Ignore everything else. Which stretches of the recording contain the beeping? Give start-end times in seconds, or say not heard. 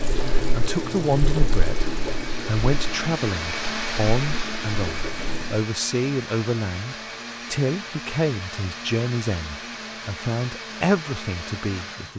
not heard.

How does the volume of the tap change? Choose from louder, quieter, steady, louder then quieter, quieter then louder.
quieter then louder.